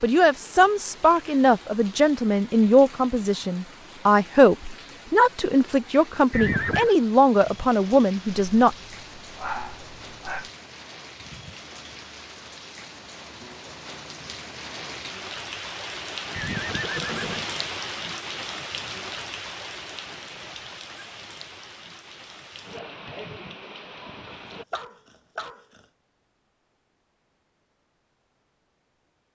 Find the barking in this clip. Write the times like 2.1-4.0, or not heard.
8.2-10.5, 24.2-25.8.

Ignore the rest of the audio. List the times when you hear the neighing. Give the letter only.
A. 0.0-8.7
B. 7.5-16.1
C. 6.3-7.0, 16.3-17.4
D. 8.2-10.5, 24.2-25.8
C.